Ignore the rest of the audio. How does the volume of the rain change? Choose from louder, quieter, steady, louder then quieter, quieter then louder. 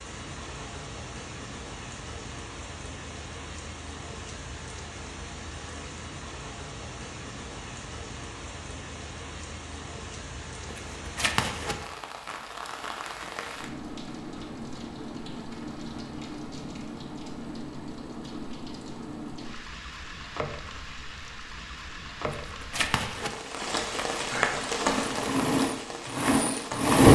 louder.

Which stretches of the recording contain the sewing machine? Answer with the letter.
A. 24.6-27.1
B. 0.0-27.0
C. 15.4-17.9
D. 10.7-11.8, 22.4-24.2
A.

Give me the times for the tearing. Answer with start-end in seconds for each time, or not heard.
10.7-11.8, 22.4-24.2.